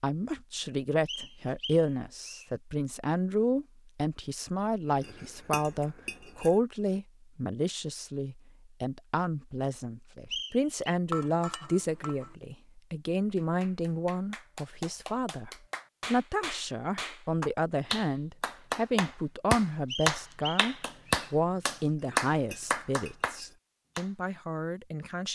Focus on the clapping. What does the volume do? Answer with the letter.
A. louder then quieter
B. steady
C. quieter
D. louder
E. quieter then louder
D.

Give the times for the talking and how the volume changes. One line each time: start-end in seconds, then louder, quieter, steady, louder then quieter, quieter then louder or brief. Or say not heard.
0.0-25.3 steady.